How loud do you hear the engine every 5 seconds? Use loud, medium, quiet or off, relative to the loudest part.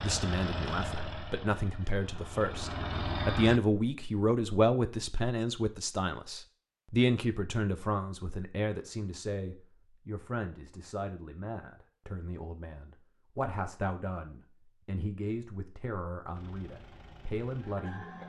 loud, off, off, medium.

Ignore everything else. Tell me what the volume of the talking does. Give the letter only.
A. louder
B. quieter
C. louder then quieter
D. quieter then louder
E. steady
B.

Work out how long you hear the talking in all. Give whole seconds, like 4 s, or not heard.
18 s.